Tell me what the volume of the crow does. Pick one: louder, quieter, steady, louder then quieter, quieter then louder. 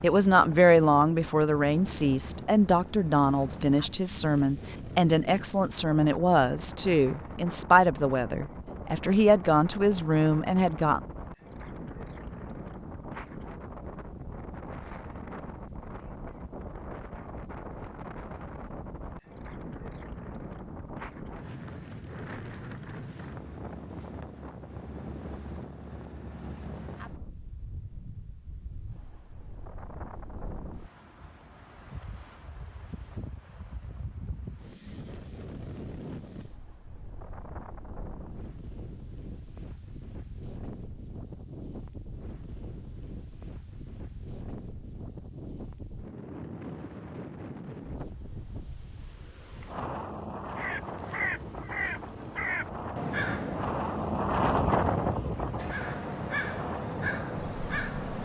quieter then louder.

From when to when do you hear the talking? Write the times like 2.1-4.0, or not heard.
0.0-11.0.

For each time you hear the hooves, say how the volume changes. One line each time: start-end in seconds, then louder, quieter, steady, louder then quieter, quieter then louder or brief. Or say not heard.
not heard.